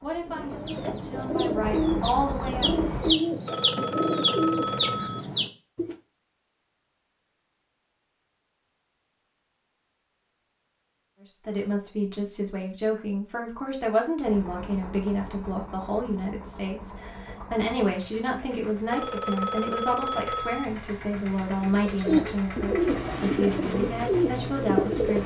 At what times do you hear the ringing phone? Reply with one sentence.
The ringing phone can be heard from 3.5 to 5.2 s and from 18.9 to 20.6 s.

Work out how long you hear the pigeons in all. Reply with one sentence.
The pigeons can be heard for 9 seconds in total.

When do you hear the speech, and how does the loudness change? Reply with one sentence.
The speech can be heard briefly from 0.0 to 2.8 s; and from 11.2 to 25.2 s, at a steady volume.